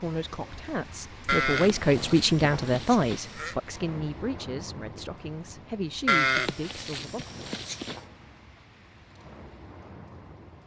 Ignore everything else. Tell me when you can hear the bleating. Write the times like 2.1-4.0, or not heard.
1.2-3.5, 6.0-8.0.